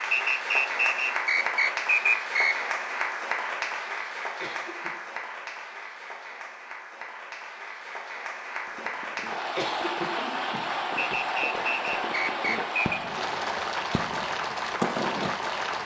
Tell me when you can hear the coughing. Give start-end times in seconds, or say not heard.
4.4-5.0, 9.6-11.2.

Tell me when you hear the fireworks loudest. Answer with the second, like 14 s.
15 s.